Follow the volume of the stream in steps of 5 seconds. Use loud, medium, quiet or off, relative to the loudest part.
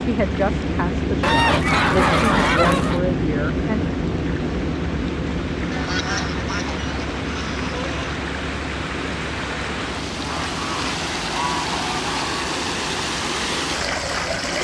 medium, medium, loud.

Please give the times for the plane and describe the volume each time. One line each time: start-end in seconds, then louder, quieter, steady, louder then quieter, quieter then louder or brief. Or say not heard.
0.0-14.5 quieter.